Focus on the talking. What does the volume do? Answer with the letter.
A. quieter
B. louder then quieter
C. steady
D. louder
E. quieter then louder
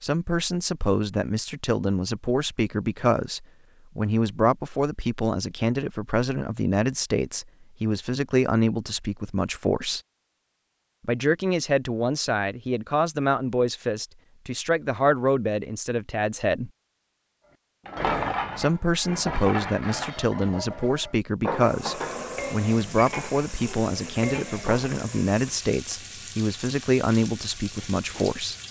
C.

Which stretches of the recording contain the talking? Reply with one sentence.
The talking can be heard from 0.0 to 10.0 s, from 11.1 to 16.7 s and from 18.6 to 28.6 s.